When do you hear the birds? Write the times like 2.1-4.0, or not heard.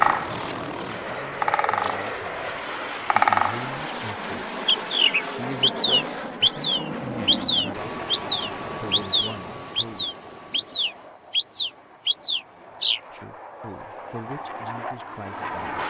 0.0-13.0.